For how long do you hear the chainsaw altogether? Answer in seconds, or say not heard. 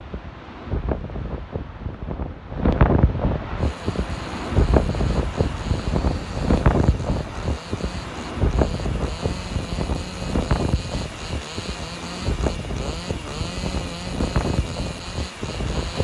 12 s.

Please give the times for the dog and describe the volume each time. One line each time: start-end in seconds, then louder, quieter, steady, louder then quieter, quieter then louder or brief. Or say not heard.
not heard.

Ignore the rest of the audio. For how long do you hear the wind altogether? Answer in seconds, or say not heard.
16 s.